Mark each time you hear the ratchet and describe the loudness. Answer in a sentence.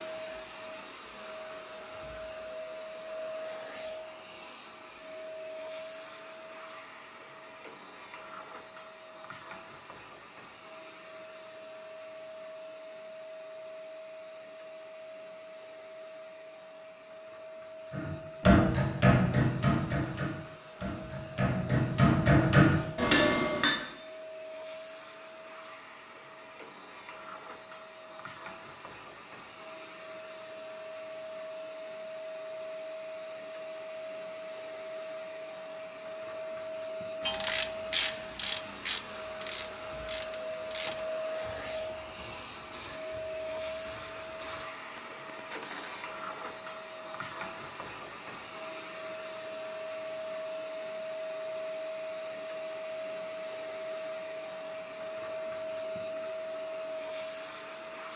The ratchet can be heard from 37.2 to 46.0 s, getting quieter.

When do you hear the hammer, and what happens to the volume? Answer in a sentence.
The hammer can be heard from 17.9 to 23.8 s, getting quieter then louder.